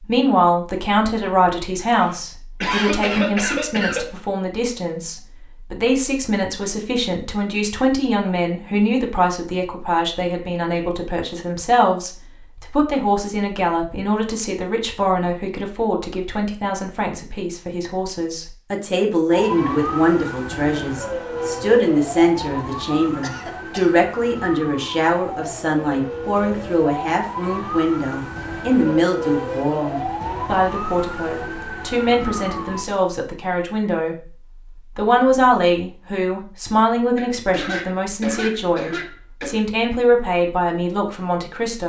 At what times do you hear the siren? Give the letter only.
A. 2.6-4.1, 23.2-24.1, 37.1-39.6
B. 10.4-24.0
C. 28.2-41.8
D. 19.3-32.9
D.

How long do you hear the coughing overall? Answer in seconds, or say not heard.
5 s.